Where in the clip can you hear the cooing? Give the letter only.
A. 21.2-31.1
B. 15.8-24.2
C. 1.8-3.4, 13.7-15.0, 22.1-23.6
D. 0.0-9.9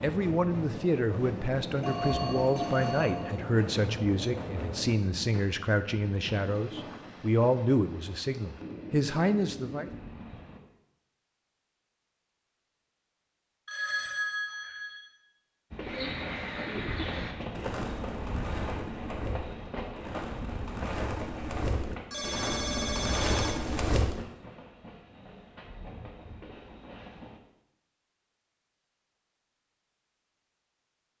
B.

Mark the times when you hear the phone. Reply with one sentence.
The phone can be heard from 1.8 to 3.4 s, from 13.7 to 15.0 s and from 22.1 to 23.6 s.